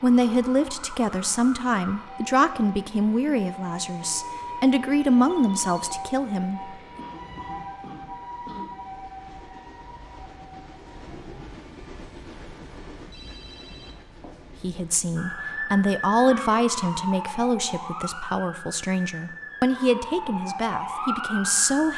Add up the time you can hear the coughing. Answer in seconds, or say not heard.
2 s.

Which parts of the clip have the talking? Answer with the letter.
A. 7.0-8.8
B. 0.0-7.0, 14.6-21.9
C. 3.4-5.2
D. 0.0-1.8
B.